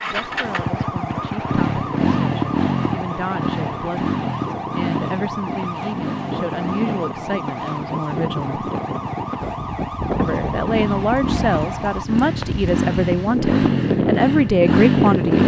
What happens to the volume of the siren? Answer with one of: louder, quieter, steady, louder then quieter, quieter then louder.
steady.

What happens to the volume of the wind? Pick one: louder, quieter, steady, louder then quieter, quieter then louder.
louder.